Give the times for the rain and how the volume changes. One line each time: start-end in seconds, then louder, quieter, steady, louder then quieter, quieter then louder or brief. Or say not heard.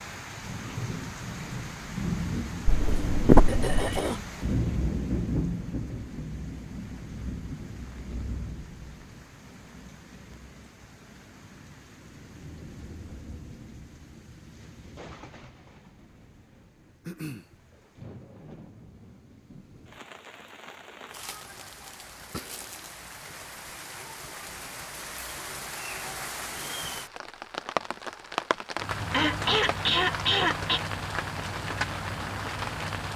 0.0-33.1 quieter then louder.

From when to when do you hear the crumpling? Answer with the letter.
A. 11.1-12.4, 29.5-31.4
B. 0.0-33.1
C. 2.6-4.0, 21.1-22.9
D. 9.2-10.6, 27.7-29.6
C.